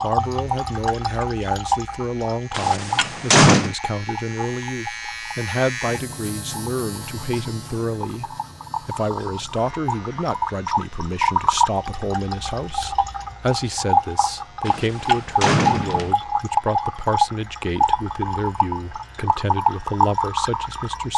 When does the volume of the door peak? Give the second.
3 s.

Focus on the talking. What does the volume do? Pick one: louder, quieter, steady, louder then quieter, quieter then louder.
steady.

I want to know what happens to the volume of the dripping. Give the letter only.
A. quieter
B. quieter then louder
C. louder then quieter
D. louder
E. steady
B.